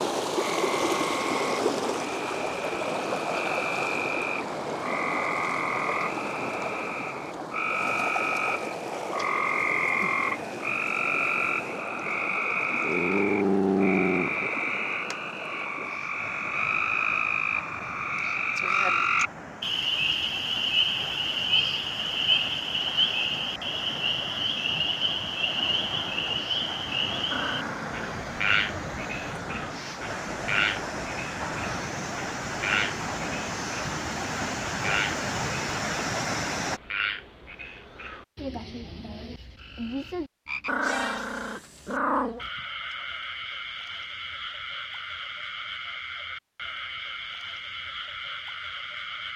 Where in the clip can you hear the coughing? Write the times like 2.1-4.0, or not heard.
not heard.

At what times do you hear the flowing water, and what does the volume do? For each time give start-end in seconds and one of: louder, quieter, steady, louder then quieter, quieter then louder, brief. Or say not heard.
0.0-36.8 quieter then louder.